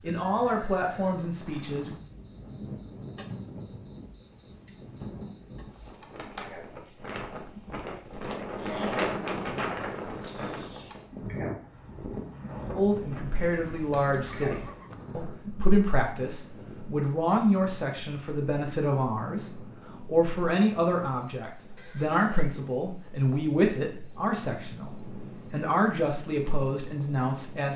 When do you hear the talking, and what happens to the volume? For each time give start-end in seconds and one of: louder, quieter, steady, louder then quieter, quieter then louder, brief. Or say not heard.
0.0-1.9 brief
12.8-27.7 steady.